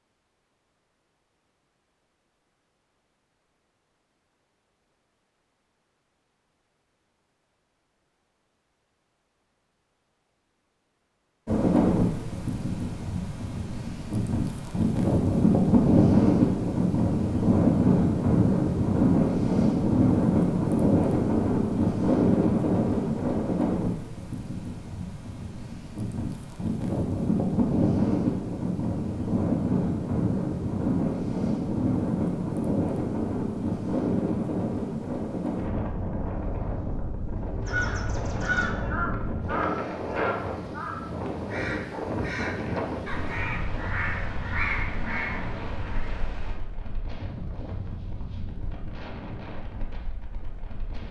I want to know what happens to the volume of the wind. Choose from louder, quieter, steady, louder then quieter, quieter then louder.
quieter.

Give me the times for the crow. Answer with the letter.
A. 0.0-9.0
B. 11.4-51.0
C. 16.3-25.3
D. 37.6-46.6
D.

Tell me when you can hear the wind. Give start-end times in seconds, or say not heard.
11.4-51.0.